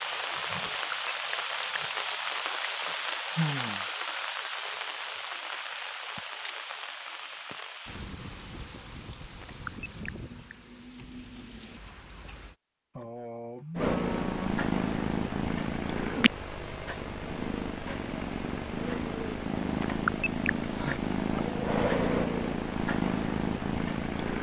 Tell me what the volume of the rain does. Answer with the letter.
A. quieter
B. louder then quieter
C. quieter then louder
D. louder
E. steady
A.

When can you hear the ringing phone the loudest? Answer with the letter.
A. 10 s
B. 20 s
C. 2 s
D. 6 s
B.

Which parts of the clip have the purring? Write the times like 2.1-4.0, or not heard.
13.8-24.3.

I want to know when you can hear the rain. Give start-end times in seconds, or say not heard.
0.0-12.6.